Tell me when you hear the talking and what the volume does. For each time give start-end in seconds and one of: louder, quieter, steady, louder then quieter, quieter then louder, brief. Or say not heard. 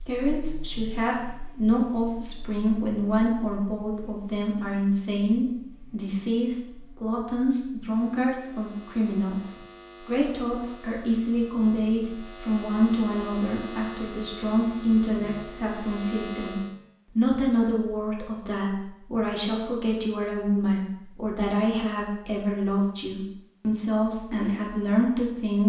0.0-25.6 steady.